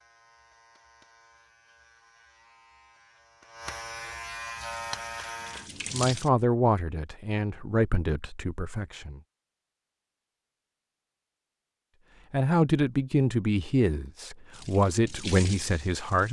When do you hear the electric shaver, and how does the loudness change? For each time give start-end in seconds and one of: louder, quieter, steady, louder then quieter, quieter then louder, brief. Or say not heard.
0.0-5.7 louder.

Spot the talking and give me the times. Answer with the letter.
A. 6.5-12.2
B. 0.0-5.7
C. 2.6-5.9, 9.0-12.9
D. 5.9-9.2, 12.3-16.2
D.